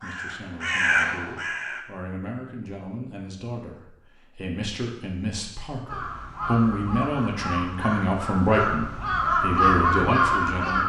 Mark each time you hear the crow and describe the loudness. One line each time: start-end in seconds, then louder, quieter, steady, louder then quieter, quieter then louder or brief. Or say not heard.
0.0-1.9 brief
5.8-10.8 louder.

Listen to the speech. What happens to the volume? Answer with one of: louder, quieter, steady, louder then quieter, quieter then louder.
louder.